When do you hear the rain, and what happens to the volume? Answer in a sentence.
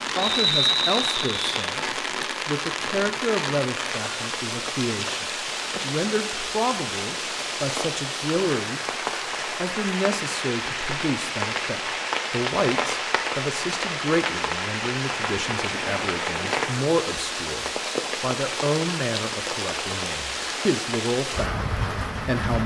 You can hear the rain from 0.0 to 22.6 s, at a steady volume.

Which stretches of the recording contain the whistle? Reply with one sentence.
You can hear the whistle from 0.1 to 1.4 s.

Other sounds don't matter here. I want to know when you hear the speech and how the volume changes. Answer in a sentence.
You can hear the speech from 0.0 to 22.6 s, at a steady volume.